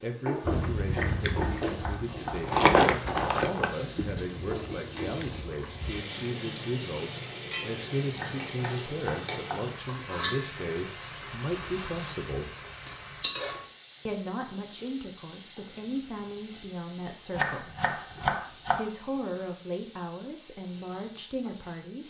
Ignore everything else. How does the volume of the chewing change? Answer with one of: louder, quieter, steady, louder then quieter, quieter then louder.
louder then quieter.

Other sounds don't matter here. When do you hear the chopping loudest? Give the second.
18 s.